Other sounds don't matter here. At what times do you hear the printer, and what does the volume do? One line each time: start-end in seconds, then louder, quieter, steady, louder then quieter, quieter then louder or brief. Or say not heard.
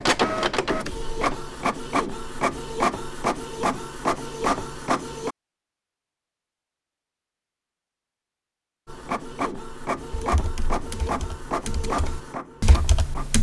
0.0-5.3 steady
8.8-13.3 quieter.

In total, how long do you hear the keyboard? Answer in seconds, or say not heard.
3 s.